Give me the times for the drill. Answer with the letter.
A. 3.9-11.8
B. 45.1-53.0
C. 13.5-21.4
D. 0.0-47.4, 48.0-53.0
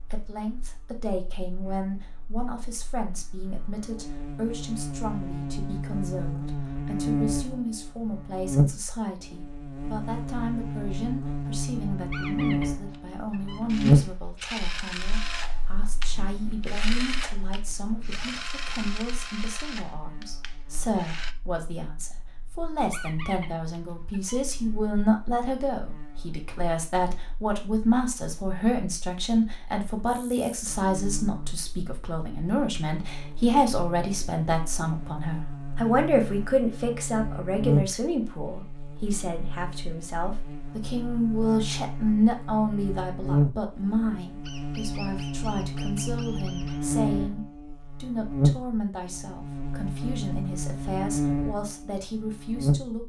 C.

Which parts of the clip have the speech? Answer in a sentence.
You can hear the speech from 0.0 to 47.4 s and from 48.0 to 53.0 s.